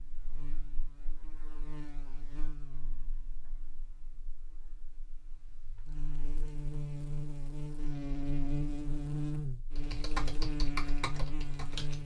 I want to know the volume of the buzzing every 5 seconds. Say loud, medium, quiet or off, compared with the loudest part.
quiet, loud, loud.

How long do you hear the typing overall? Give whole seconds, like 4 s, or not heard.
2 s.